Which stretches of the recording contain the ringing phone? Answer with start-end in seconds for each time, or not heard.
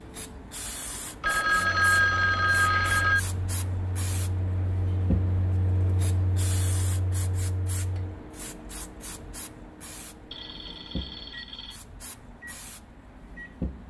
1.2-3.2, 10.3-11.8.